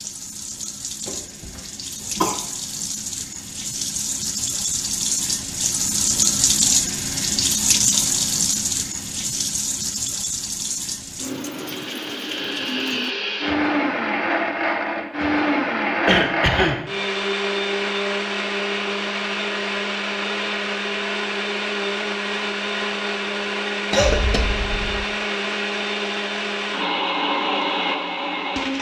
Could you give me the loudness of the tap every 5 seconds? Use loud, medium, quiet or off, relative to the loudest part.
medium, loud, medium, off, off, off.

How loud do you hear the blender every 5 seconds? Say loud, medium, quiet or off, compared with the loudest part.
off, off, loud, loud, loud, loud.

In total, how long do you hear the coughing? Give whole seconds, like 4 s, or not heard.
3 s.